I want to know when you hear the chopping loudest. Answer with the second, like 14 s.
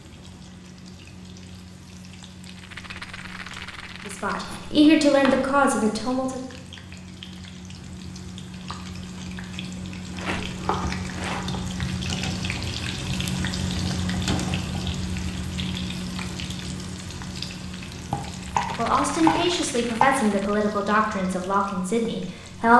19 s.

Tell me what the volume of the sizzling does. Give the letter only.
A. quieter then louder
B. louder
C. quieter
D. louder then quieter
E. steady
D.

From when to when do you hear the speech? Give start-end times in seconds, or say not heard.
4.0-6.4, 18.8-22.7.